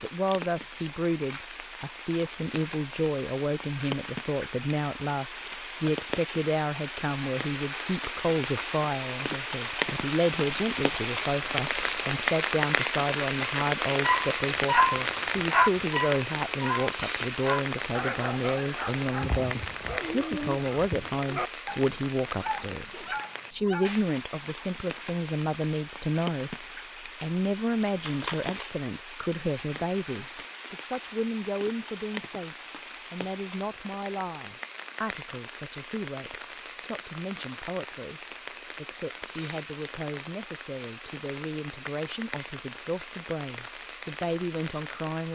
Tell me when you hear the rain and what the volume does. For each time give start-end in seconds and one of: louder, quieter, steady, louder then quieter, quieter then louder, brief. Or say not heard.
0.0-45.3 louder then quieter.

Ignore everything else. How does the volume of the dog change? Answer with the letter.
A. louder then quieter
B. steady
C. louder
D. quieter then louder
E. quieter
E.